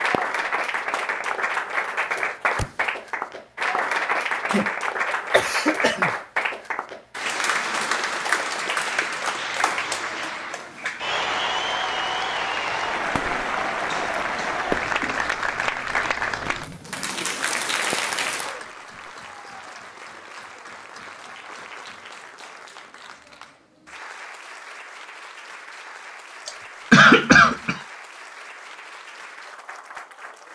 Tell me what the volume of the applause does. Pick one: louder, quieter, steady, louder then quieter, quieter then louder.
quieter.